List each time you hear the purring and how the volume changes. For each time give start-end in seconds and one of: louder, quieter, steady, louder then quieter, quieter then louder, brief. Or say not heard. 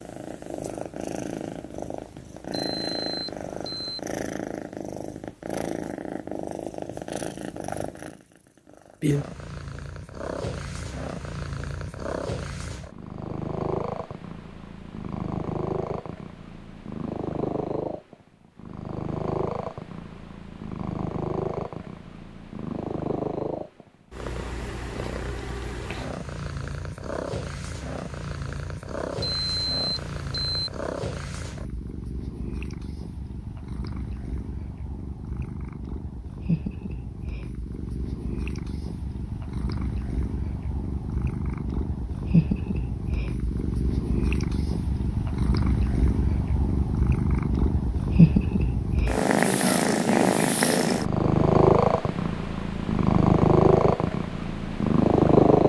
0.0-55.6 louder.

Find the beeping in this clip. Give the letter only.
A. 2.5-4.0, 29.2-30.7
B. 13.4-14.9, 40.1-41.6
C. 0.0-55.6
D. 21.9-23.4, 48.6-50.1
A.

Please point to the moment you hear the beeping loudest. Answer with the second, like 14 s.
30 s.